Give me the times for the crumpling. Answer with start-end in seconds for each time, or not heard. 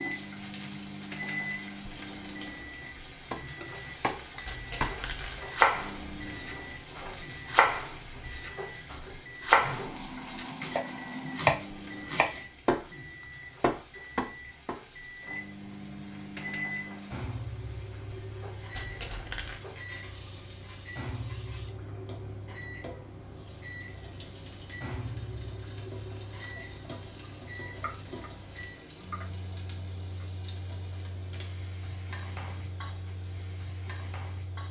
4.5-5.5, 18.7-19.6.